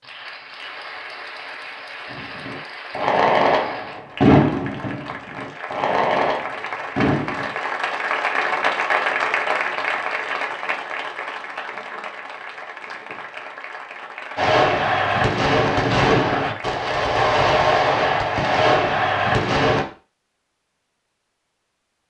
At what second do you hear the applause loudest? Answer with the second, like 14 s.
9 s.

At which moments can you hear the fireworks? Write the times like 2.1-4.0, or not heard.
2.1-7.5, 14.3-19.9.